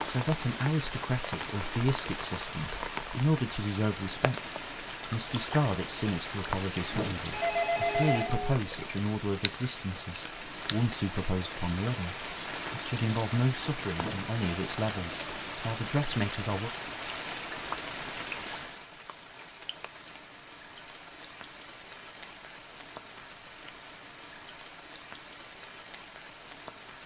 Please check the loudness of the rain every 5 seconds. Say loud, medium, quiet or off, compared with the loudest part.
loud, loud, loud, loud, medium, medium.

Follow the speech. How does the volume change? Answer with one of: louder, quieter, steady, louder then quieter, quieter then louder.
steady.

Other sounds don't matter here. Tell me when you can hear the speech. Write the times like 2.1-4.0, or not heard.
0.1-16.7.